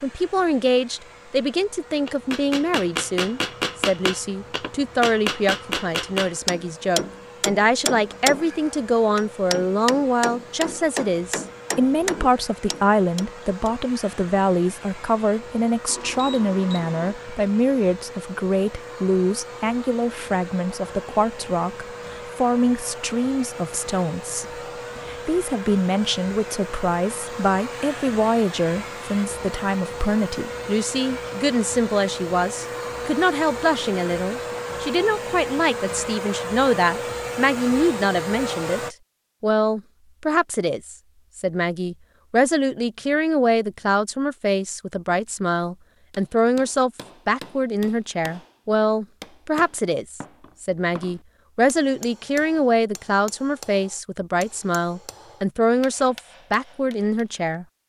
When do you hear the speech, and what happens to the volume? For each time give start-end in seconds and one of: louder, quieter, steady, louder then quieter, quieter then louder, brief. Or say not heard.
0.0-57.6 steady.